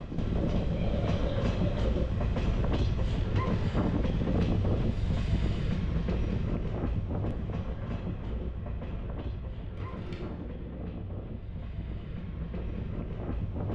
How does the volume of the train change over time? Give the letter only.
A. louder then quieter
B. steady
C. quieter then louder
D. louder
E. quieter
E.